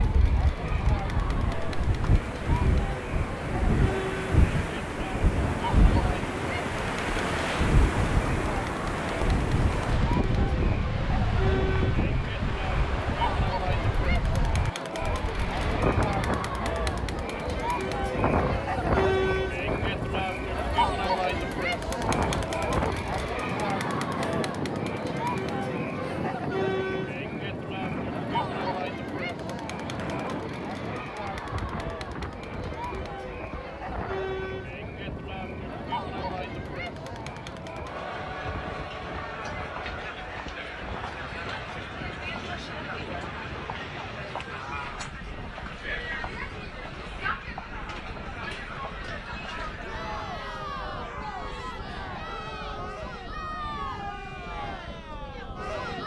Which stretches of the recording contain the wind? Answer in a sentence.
You can hear the wind from 0.0 to 56.0 s.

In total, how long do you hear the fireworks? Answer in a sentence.
The fireworks can't be heard in this clip.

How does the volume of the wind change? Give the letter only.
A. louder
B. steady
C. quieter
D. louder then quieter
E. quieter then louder
C.